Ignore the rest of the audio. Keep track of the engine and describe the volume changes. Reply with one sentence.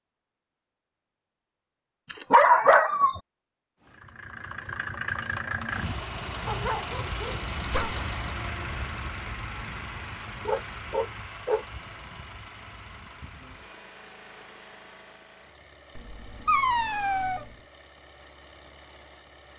The volume of the engine goes down.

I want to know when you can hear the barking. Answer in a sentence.
The barking can be heard from 2.1 to 3.2 s, from 6.5 to 8.0 s, from 10.4 to 11.7 s and from 15.9 to 17.6 s.